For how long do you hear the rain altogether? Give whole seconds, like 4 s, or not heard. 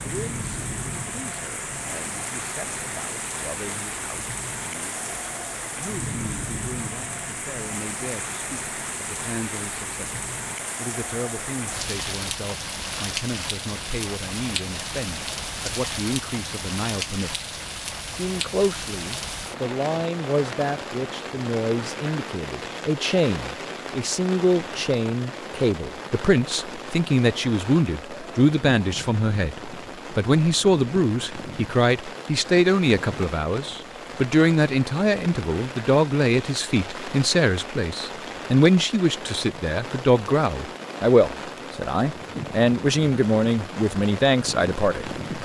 45 s.